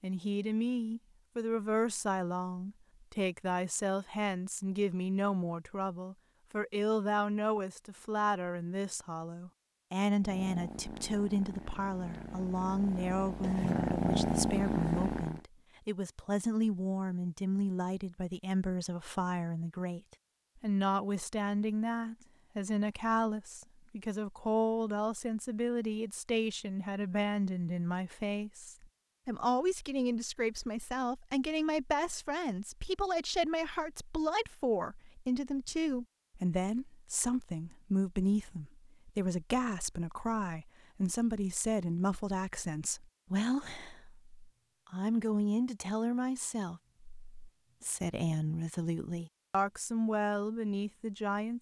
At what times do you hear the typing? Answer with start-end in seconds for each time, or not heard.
not heard.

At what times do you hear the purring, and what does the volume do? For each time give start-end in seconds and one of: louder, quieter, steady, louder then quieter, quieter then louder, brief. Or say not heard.
10.2-15.4 louder.